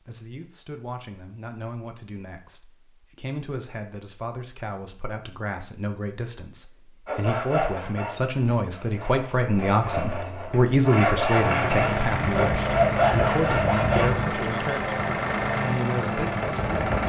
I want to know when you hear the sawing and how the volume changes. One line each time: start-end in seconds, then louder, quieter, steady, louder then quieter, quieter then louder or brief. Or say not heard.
7.0-14.1 quieter then louder.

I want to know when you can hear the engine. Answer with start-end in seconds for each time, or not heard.
11.3-17.0.